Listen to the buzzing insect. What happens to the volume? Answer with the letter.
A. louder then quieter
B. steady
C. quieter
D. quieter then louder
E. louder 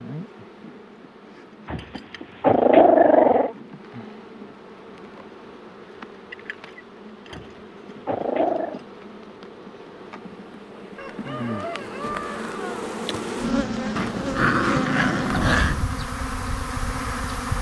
E.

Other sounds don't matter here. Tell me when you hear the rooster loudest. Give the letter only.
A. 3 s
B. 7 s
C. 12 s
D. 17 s
C.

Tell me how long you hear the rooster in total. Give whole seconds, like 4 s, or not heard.
2 s.